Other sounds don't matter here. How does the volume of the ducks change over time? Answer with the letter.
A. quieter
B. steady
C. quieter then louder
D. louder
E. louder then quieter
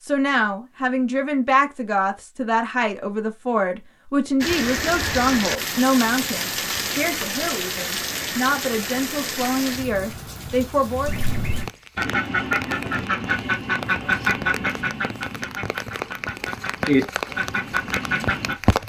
C.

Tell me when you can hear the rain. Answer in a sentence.
The rain can be heard from 4.4 to 18.8 s.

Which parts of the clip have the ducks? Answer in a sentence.
You can hear the ducks from 11.1 to 18.6 s.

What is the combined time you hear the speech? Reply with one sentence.
You can hear the speech for 11 seconds altogether.